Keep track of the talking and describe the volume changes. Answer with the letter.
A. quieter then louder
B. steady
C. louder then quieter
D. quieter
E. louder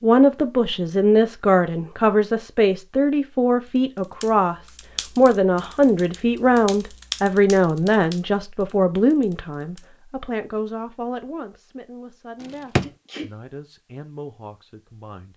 D.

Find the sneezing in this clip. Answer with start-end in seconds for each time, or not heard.
12.8-13.3.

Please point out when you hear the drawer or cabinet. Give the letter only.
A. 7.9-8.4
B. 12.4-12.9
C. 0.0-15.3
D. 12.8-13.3
B.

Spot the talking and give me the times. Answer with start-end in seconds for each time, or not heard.
0.0-15.3.